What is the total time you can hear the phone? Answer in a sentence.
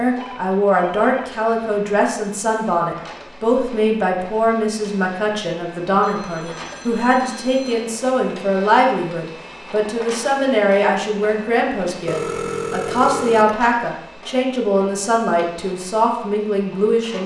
The phone can be heard for 5 seconds in total.